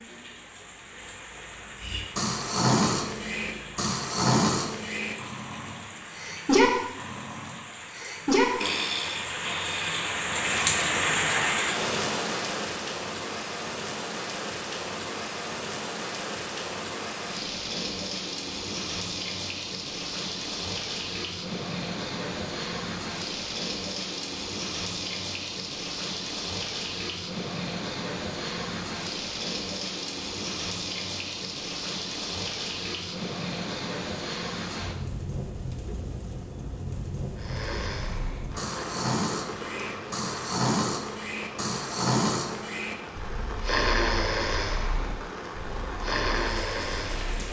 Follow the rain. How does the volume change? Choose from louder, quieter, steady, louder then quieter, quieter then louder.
louder then quieter.